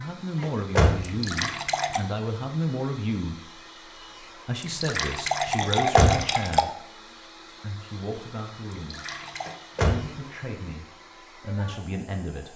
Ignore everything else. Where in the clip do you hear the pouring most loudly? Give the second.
6 s.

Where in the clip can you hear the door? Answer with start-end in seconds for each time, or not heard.
0.4-1.4, 5.6-6.7, 9.4-10.1.